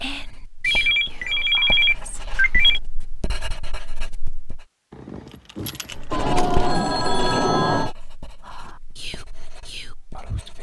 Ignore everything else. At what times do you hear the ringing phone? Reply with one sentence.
The ringing phone can be heard from 0.6 to 2.8 s and from 6.1 to 8.0 s.